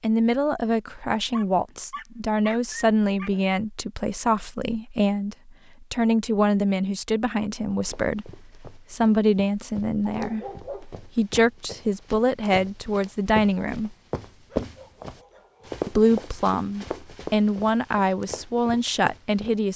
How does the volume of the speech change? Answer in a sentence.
The volume of the speech stays about the same.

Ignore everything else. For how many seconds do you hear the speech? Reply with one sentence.
The speech can be heard for 18 seconds in total.